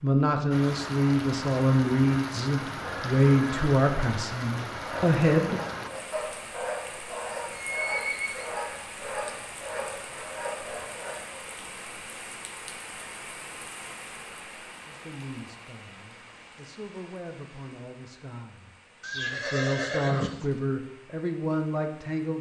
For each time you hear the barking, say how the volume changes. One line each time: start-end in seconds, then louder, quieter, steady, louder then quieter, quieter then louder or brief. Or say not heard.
4.8-11.4 steady.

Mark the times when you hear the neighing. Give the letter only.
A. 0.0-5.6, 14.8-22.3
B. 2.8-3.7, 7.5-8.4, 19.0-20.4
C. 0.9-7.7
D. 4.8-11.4
B.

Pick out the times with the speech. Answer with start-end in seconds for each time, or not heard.
0.0-5.6, 14.8-22.3.